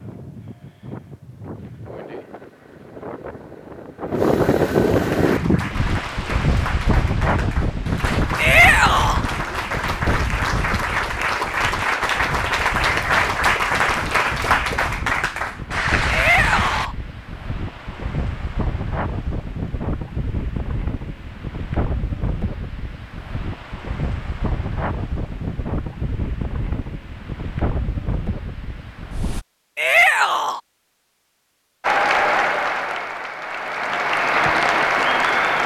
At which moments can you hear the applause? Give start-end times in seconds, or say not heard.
5.0-16.9, 31.8-35.6.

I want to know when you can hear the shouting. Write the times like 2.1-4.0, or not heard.
8.3-9.2, 16.1-16.9, 29.8-30.6.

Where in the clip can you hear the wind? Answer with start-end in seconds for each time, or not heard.
0.0-29.4.